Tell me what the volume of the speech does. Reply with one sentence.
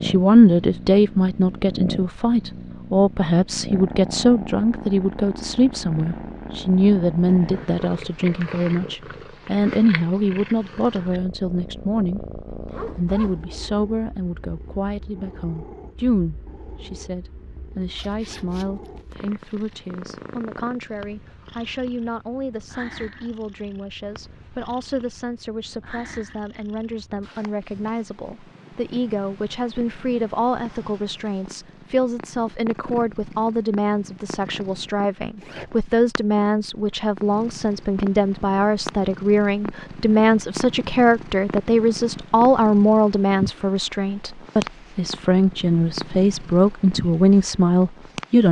The volume of the speech goes down, then up.